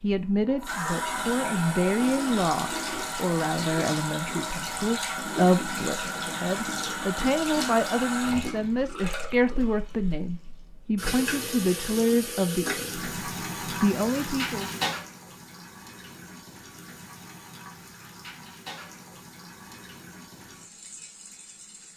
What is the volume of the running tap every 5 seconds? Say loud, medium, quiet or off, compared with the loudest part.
loud, loud, loud, quiet, quiet.